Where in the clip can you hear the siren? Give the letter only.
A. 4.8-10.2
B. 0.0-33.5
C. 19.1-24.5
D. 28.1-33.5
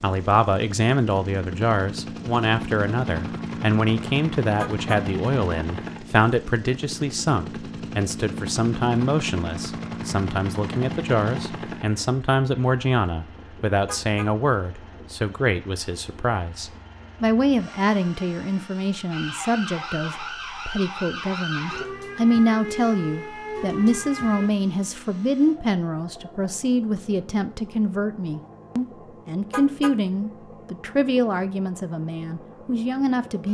C.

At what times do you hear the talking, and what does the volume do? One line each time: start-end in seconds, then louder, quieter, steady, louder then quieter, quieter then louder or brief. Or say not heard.
0.0-33.5 steady.